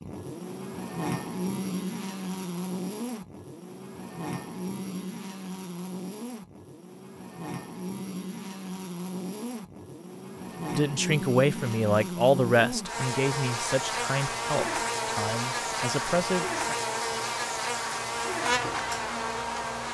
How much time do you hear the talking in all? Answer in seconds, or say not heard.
6 s.